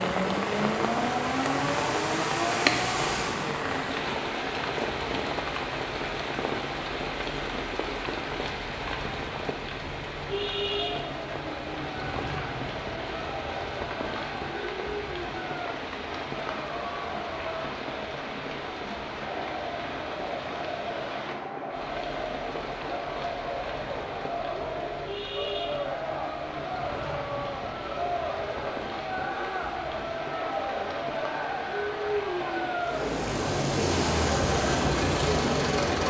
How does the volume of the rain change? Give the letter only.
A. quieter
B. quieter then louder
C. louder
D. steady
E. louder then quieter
A.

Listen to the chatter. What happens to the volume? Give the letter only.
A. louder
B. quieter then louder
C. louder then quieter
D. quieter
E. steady
A.